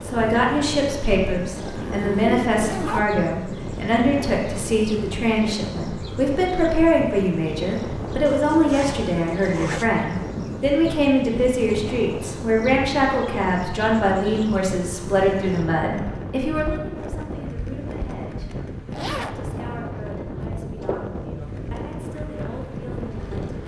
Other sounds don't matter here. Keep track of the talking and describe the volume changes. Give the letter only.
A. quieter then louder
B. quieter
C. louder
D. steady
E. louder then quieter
B.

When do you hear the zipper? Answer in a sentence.
You can hear the zipper from 1.6 to 3.2 s, from 8.4 to 9.9 s and from 18.9 to 19.4 s.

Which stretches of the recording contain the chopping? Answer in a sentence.
You can't hear the chopping here.